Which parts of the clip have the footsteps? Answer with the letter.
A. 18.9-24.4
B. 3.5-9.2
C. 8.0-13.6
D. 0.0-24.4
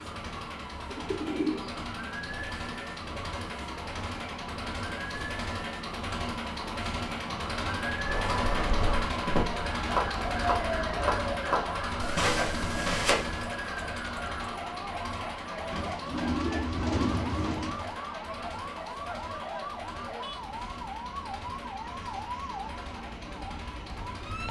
C.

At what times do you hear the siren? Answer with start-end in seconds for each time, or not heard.
0.0-24.4.